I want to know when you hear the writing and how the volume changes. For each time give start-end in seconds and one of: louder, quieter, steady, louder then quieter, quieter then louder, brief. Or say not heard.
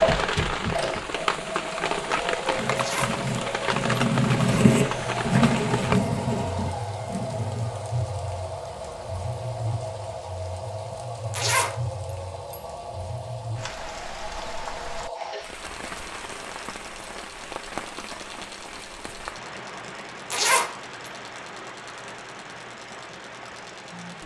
2.5-7.8 louder then quieter.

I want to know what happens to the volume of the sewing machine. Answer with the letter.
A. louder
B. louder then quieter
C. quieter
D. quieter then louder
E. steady
C.